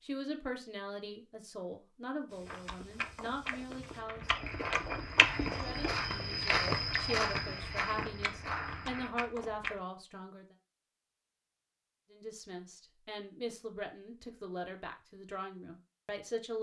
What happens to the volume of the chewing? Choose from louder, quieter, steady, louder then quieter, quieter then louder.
louder then quieter.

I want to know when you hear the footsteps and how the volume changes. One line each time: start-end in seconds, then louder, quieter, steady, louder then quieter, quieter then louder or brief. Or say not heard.
2.2-9.1 louder then quieter.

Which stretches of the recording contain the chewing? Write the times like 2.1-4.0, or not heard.
2.5-9.8.